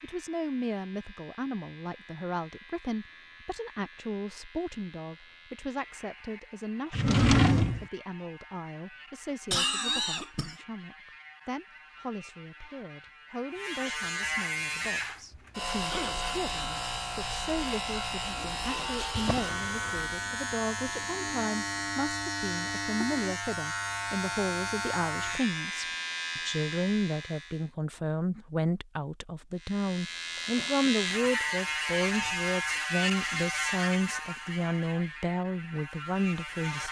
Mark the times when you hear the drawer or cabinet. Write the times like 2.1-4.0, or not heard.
6.9-7.8, 19.1-20.0.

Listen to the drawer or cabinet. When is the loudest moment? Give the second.
7 s.